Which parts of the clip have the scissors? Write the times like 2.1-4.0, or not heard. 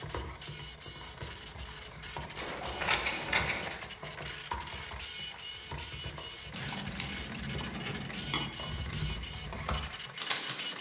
2.4-3.8, 6.5-8.5.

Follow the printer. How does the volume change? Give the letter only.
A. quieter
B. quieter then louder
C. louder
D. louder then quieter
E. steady
E.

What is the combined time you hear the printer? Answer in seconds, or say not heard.
11 s.